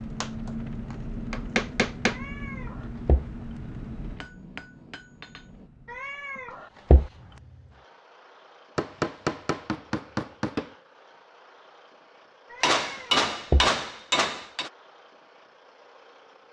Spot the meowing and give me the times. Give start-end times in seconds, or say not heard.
2.1-3.2, 5.9-7.1, 12.5-13.7.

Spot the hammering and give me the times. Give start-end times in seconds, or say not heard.
0.2-2.2, 4.2-5.7, 8.8-10.7, 12.6-14.7.